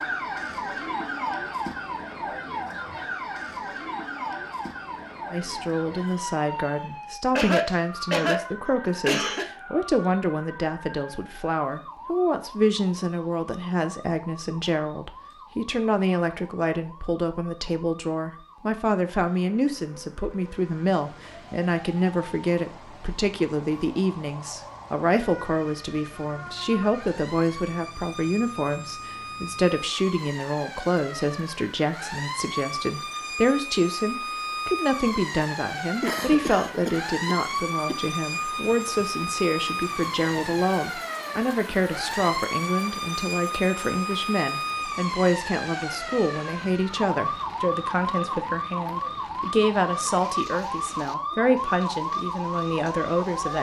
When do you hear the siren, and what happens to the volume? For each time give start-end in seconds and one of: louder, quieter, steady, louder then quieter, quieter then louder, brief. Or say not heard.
0.0-53.5 quieter then louder.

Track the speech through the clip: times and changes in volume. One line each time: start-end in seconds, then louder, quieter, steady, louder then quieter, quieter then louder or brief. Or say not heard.
5.3-53.5 steady.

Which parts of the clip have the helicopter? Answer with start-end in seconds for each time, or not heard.
not heard.